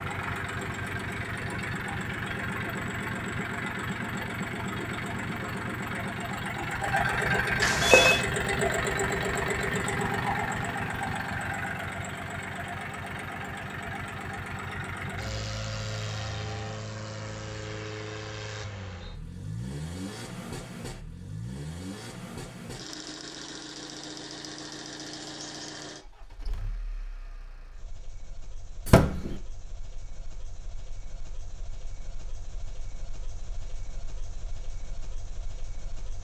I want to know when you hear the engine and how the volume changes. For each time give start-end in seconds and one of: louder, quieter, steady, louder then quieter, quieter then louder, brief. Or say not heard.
0.0-36.2 quieter.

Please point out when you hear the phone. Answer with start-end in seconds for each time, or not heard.
7.6-8.2, 28.9-29.4.